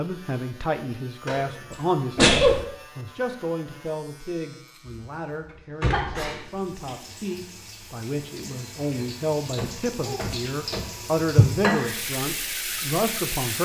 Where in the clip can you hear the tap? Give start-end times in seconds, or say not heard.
6.4-13.6.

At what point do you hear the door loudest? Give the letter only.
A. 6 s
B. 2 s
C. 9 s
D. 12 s
A.